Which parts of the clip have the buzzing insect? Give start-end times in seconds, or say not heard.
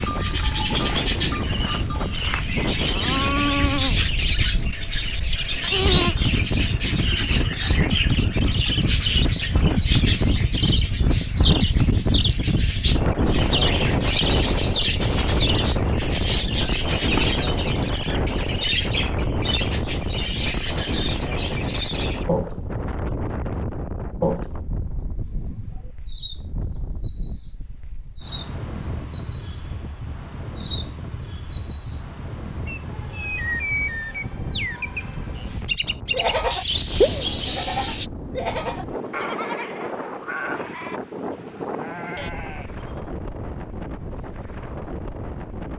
not heard.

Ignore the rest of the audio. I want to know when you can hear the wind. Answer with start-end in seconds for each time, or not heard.
0.0-45.7.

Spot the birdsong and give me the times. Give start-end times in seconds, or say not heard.
0.0-38.1.